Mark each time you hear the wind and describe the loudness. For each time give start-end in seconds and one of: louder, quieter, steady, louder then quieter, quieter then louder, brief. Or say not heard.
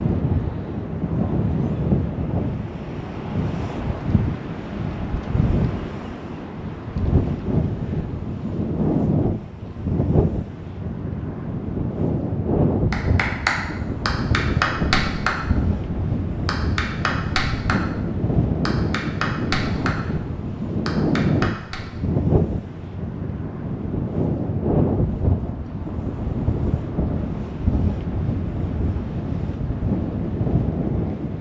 0.0-31.3 steady.